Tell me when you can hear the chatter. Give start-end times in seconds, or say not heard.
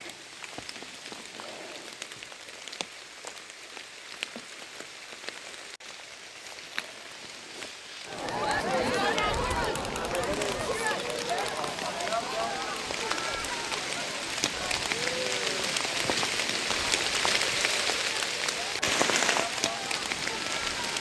8.1-20.9.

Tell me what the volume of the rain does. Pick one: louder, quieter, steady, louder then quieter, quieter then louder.
louder.